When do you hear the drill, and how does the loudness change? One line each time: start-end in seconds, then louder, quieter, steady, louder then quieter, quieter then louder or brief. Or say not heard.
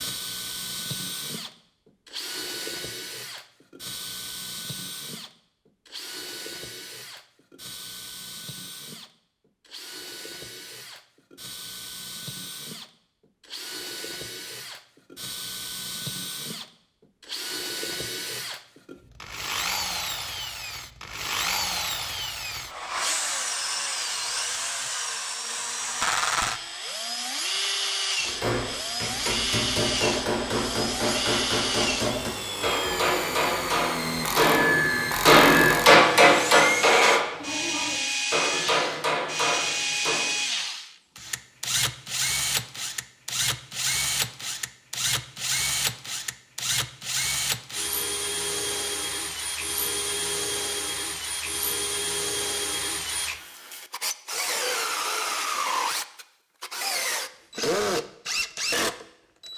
0.0-59.5 louder.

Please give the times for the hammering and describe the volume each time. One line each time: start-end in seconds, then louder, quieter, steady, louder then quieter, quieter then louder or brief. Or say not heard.
28.2-40.2 louder then quieter.